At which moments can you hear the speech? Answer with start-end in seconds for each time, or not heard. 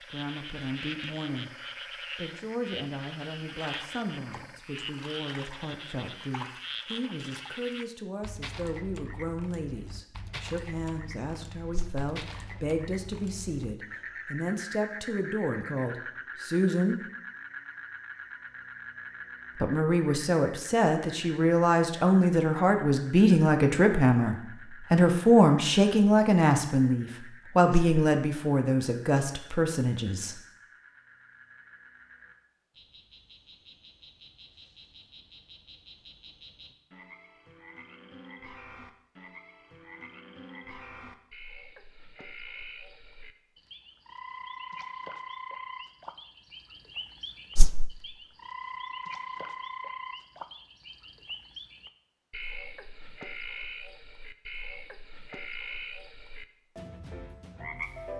0.0-1.6, 2.1-17.0, 19.6-30.4.